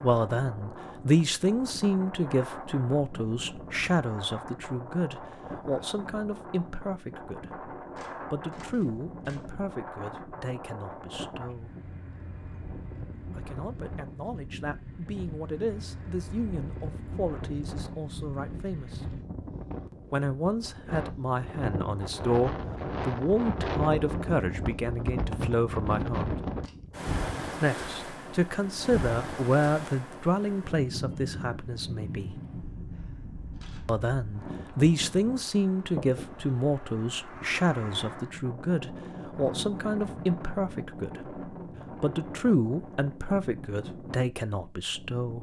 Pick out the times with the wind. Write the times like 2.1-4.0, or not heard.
0.0-45.3.